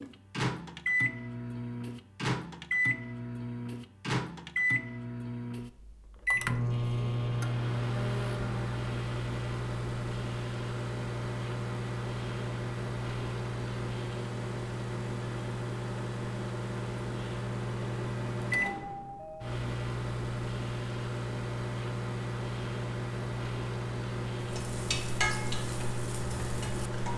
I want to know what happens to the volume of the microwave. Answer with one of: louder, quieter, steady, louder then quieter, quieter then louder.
steady.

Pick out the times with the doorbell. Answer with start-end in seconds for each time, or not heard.
18.6-19.6.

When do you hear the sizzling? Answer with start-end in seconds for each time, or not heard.
24.4-27.1.